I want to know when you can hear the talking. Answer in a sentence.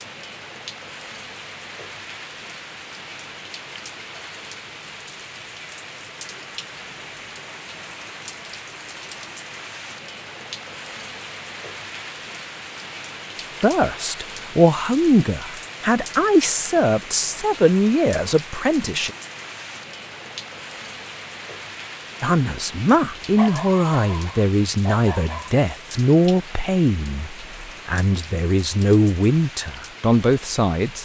The talking can be heard from 13.6 to 19.1 s and from 22.2 to 31.0 s.